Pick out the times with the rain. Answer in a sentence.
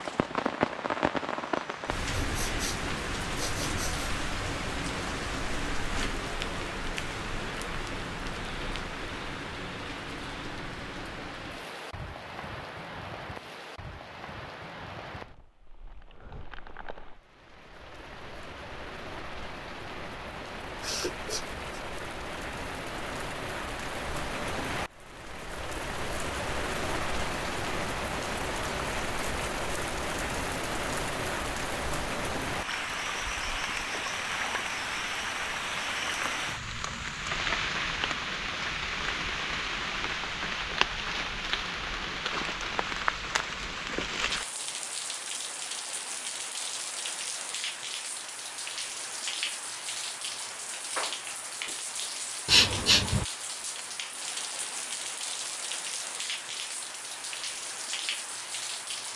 You can hear the rain from 0.0 to 59.1 s.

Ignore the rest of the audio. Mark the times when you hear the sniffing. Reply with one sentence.
The sniffing can be heard from 2.2 to 4.1 s, from 20.8 to 21.6 s and from 52.5 to 53.2 s.